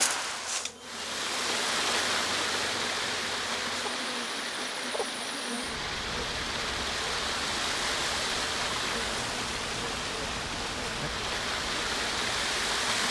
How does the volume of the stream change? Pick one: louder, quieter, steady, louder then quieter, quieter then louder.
steady.